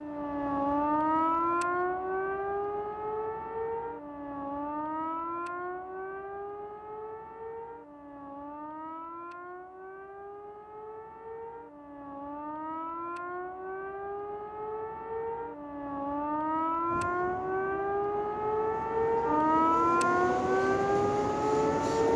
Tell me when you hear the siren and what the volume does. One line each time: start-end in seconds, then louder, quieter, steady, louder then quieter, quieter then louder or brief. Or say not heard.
0.0-22.1 quieter then louder.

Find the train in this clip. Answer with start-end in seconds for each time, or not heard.
16.9-22.1.